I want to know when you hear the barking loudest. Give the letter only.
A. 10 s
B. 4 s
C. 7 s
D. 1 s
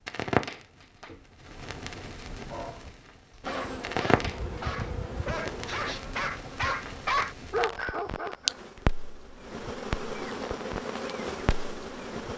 C.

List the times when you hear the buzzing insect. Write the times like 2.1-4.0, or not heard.
3.4-12.3.